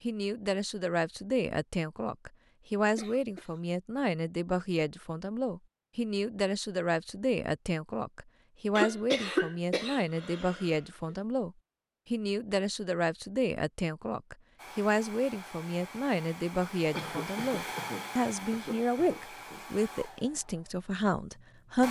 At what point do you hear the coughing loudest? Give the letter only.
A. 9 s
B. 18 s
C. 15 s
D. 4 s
A.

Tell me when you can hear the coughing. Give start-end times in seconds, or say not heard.
2.9-3.6, 8.8-10.7, 16.9-19.6.